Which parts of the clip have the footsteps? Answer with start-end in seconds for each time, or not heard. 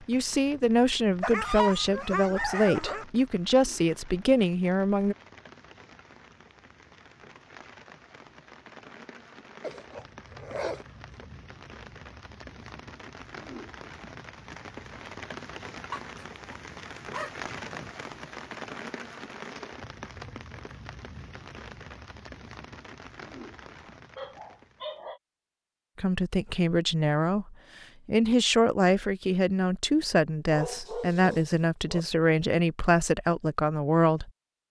not heard.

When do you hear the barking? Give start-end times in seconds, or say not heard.
1.2-3.0, 9.6-11.2, 15.9-17.9, 23.9-25.2, 30.4-32.0.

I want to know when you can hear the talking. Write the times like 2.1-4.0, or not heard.
0.1-5.2, 25.9-34.3.